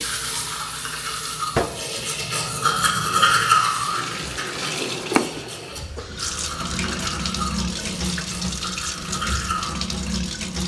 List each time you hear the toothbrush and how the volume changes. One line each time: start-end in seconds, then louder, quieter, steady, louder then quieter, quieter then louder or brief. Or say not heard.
0.0-9.8 louder then quieter.